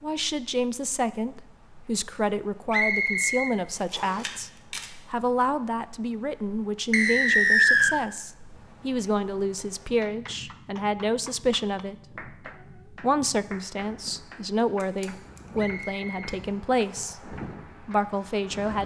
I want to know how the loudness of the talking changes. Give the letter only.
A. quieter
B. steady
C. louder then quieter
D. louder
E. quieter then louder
B.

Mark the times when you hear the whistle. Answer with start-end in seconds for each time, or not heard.
2.7-4.2, 6.9-8.0, 15.6-17.1.